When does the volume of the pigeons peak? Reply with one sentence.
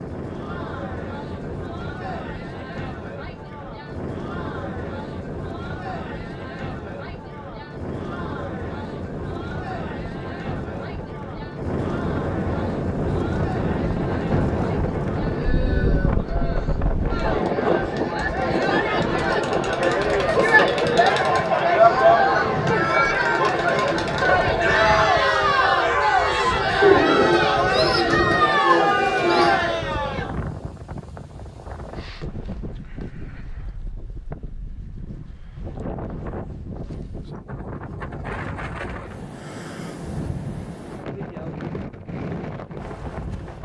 The loudest moment of the pigeons is at 27 seconds.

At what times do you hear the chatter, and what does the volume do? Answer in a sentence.
The chatter can be heard from 0.2 to 30.3 s, getting louder.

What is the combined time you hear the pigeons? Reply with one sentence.
You can hear the pigeons for 3 seconds altogether.